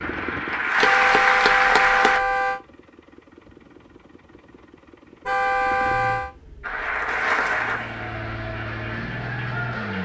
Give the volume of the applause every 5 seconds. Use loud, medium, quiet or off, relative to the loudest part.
loud, medium.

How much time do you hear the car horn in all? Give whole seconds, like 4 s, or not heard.
3 s.